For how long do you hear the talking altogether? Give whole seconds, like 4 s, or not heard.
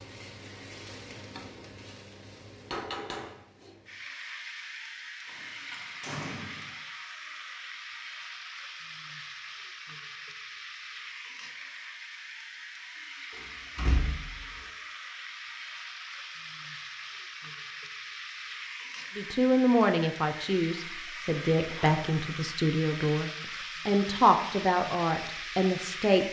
7 s.